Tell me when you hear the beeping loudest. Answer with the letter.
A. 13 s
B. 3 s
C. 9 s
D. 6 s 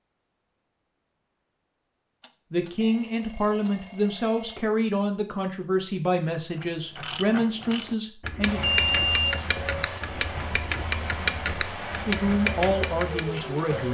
C.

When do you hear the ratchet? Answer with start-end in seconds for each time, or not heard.
6.6-13.4.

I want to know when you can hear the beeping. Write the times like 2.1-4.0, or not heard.
2.2-4.7, 8.6-9.2.